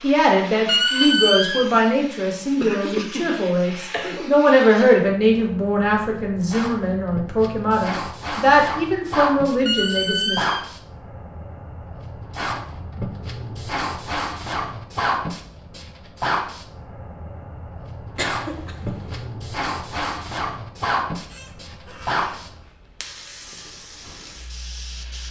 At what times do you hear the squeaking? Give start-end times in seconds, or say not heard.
0.7-1.6, 9.7-10.7, 21.1-22.4.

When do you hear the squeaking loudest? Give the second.
1 s.